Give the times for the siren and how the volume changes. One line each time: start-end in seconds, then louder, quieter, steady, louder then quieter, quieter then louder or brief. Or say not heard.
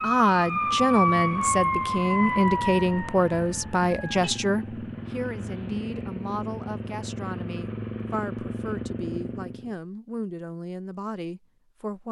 0.0-4.6 quieter.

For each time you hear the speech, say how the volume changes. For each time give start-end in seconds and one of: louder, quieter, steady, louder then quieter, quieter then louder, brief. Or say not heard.
0.0-12.0 quieter.